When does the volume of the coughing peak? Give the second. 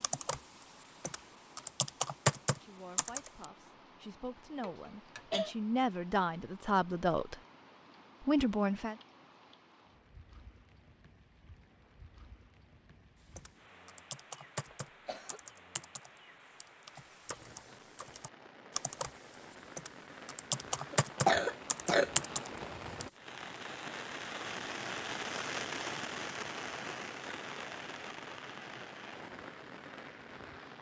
21 s.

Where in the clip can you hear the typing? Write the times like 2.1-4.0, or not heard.
0.0-3.5, 13.3-23.1.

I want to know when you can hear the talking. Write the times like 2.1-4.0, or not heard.
2.6-7.3, 8.2-8.9.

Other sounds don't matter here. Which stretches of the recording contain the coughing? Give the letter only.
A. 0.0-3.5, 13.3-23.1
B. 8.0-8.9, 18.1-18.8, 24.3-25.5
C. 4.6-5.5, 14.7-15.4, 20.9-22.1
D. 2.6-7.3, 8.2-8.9
C.